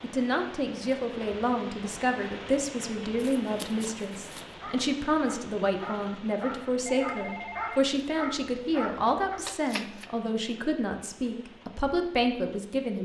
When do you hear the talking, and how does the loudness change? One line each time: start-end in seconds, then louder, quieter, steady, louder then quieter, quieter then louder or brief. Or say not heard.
0.0-13.0 steady.